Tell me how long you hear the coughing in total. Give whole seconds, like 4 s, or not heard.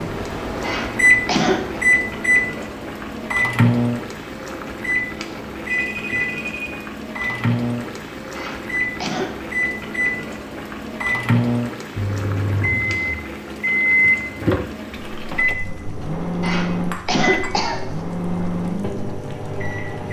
4 s.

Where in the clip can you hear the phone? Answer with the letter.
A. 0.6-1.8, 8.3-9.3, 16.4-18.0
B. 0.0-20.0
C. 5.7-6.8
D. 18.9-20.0
C.